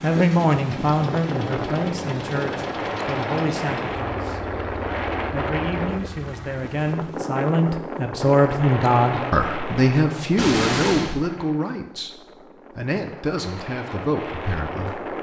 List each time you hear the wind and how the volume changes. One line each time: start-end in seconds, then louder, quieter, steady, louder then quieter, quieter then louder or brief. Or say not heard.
0.0-15.1 quieter.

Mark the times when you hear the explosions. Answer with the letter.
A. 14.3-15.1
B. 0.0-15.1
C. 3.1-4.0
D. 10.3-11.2
D.